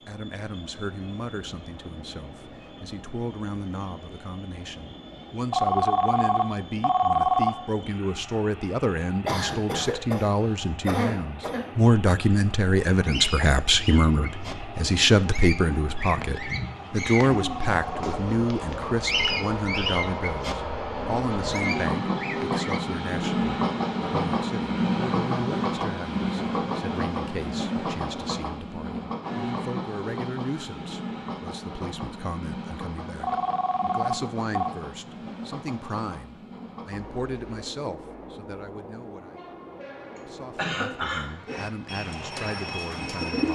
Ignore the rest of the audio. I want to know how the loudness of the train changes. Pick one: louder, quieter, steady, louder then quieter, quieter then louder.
louder then quieter.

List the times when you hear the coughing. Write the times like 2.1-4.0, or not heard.
9.2-11.7, 40.5-41.2.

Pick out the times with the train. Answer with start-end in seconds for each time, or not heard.
0.0-43.4.